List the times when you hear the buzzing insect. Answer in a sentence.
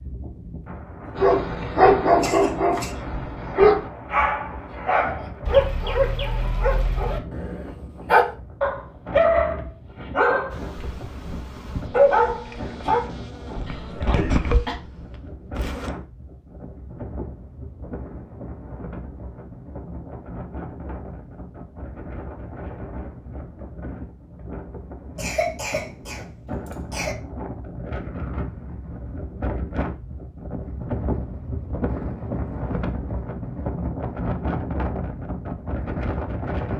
You can hear the buzzing insect from 10.5 to 15.9 s.